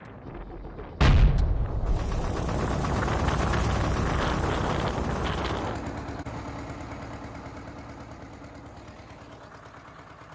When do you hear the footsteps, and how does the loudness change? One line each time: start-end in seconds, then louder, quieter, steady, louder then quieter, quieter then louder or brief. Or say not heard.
not heard.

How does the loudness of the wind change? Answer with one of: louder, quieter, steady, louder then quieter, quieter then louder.
louder.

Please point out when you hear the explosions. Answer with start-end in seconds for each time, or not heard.
1.0-2.2.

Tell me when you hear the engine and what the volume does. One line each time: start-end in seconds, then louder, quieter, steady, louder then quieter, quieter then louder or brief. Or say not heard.
0.0-10.2 louder then quieter.